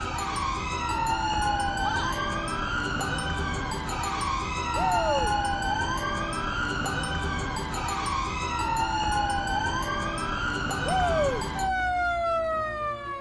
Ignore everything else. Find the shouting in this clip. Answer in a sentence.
The shouting can be heard from 1.8 to 2.3 s, from 4.8 to 5.3 s and from 10.8 to 11.4 s.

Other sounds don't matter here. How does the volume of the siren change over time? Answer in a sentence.
The loudness of the siren stays about the same.